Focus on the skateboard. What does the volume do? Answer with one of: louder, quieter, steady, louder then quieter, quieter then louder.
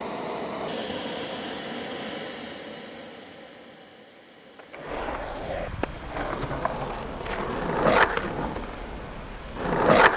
louder then quieter.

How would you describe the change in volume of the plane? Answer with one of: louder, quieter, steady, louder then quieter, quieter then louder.
quieter.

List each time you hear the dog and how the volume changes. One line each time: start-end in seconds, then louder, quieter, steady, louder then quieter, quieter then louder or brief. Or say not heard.
not heard.